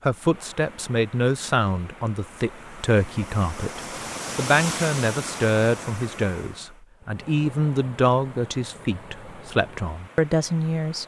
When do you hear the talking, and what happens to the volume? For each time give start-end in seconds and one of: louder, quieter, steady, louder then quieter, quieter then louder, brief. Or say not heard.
0.0-11.0 steady.